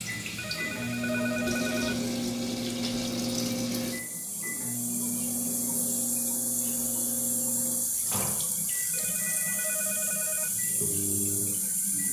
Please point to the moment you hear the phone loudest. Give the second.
1 s.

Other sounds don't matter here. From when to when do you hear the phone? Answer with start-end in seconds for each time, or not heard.
0.3-2.0, 8.9-10.6.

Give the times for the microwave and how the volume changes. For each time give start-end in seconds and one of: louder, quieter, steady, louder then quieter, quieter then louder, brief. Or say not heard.
0.0-12.0 quieter.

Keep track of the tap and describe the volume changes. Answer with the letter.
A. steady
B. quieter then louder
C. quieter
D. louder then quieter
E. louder
A.